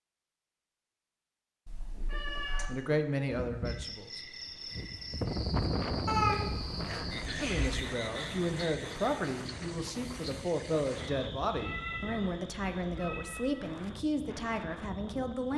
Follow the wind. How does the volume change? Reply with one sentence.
The loudness of the wind goes down.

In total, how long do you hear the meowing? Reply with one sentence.
The meowing can be heard for 5 seconds in total.